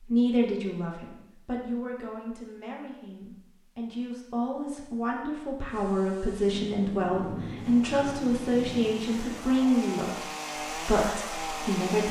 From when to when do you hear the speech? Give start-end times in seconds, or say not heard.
0.0-12.0.